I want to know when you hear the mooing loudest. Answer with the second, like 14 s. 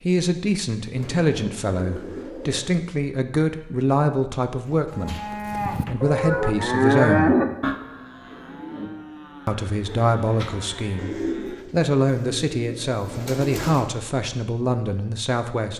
7 s.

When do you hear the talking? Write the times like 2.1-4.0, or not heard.
0.0-7.3, 9.4-15.7.